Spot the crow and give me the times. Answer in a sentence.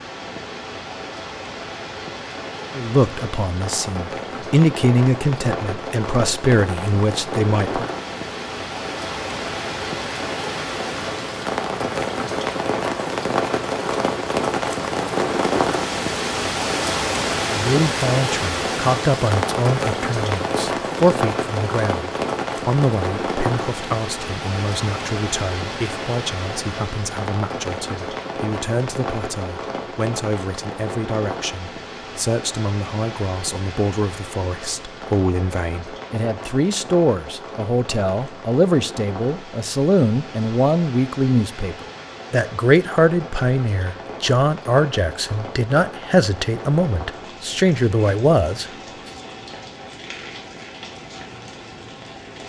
The crow can't be heard in this clip.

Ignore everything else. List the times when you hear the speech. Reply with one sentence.
The speech can be heard from 2.8 to 7.8 s and from 17.5 to 48.7 s.